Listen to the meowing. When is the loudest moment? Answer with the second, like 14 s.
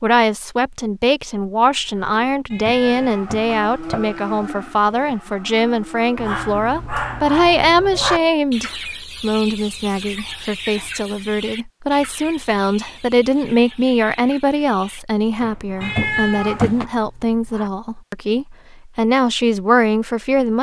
16 s.